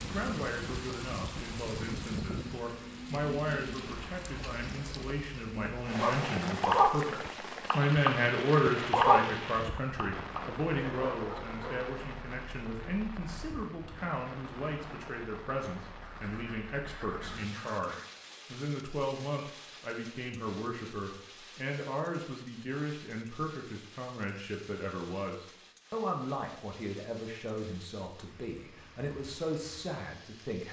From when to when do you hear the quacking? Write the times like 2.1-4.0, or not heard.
16.0-18.1.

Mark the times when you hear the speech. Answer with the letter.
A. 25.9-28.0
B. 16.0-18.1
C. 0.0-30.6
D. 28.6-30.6
C.